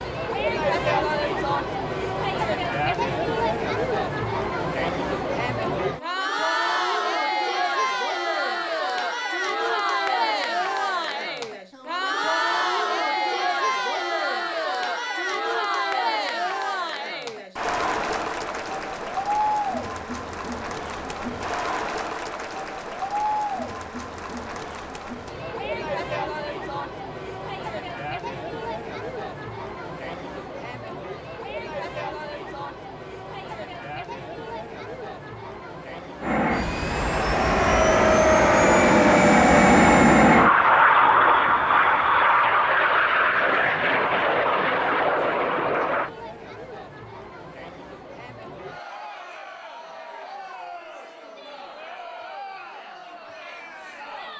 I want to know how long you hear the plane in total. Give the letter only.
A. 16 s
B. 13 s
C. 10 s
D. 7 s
C.